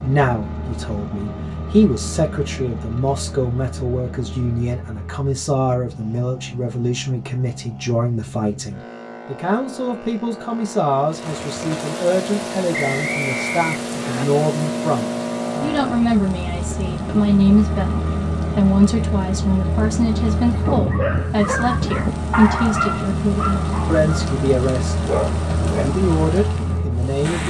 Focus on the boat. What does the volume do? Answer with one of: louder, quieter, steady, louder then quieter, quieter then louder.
louder.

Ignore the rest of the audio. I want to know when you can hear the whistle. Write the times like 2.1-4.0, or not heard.
12.7-14.2.